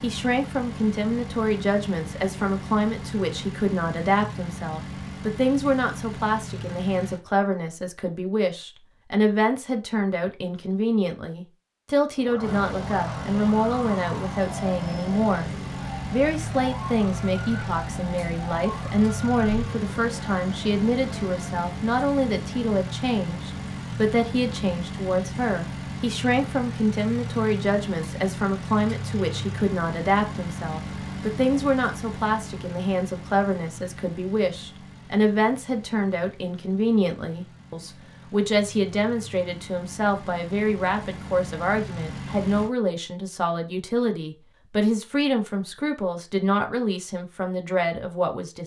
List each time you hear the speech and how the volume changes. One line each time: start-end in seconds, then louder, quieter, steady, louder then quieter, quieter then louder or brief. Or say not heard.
0.0-15.5 steady
16.1-48.6 steady.